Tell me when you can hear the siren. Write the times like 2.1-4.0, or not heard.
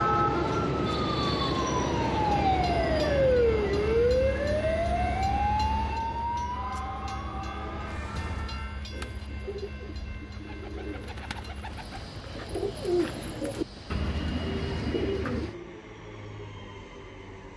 0.0-8.8.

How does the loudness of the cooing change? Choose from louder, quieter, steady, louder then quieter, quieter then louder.
louder.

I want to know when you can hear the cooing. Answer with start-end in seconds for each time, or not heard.
8.9-15.6.